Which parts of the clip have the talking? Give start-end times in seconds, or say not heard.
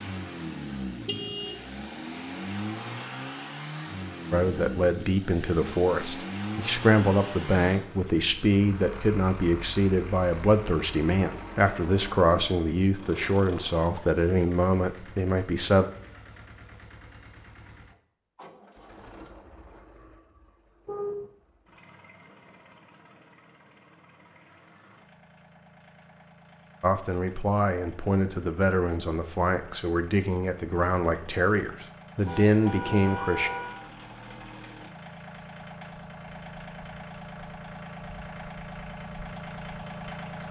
4.3-15.8, 26.8-33.5.